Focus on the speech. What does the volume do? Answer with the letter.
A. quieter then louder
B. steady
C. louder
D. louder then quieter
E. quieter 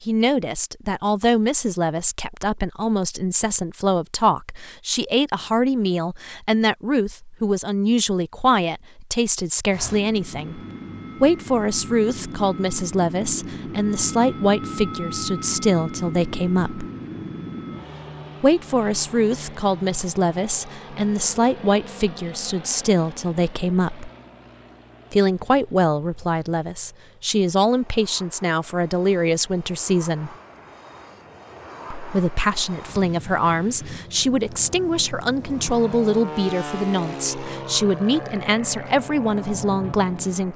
B.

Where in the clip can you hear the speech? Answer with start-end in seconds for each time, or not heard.
0.0-10.6, 11.2-16.9, 18.4-24.1, 25.1-30.3, 31.9-40.5.